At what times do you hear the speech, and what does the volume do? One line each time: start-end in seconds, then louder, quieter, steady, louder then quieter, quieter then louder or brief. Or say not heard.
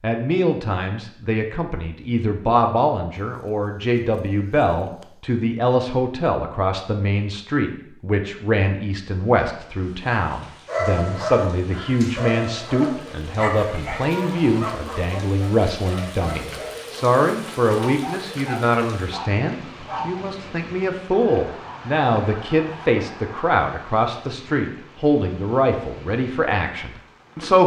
0.0-27.6 steady.